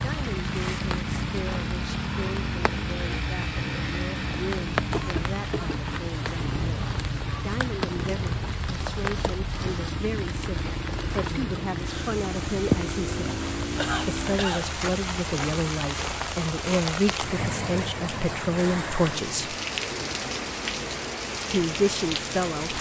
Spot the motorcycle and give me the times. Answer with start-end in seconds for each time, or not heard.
0.0-14.4.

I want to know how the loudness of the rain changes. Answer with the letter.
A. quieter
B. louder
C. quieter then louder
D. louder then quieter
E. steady
E.